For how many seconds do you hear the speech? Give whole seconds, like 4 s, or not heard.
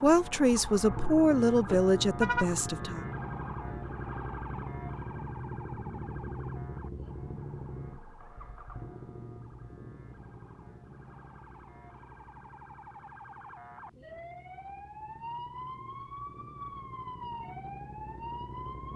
3 s.